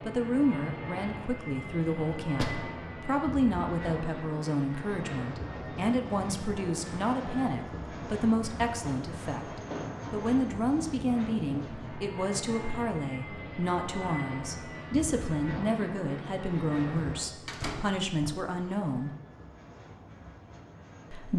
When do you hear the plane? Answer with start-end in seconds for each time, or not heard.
0.0-21.3.